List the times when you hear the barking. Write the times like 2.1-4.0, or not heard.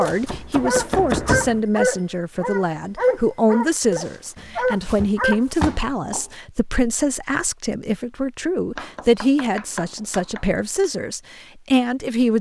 0.0-5.4.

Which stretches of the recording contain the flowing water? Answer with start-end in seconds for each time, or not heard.
not heard.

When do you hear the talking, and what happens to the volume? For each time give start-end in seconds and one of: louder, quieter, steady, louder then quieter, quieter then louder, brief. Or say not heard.
0.0-12.3 steady.